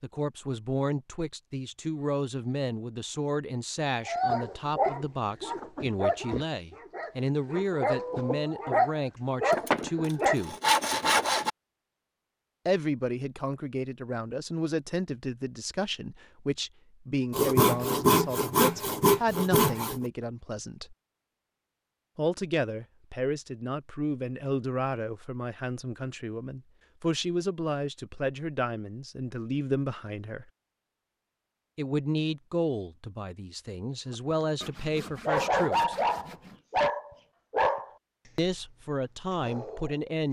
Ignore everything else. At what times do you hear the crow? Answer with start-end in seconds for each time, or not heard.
not heard.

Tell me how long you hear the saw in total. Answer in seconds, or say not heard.
7 s.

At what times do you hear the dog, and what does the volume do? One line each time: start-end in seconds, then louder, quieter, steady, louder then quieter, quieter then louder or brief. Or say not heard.
4.0-10.4 quieter then louder
35.2-40.2 quieter then louder.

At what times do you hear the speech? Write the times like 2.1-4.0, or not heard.
0.0-10.6, 12.7-20.9, 22.1-30.4, 31.8-36.0, 38.4-40.2.